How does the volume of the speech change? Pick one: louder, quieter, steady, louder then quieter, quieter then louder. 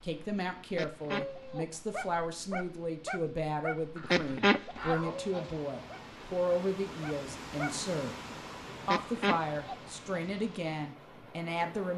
steady.